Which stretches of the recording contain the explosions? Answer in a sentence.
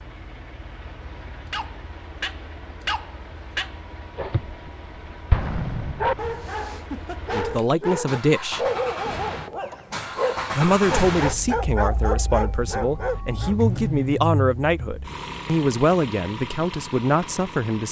You can hear the explosions from 5.3 to 6.5 s.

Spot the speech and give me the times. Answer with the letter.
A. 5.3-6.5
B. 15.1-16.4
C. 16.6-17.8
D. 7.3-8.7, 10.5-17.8
D.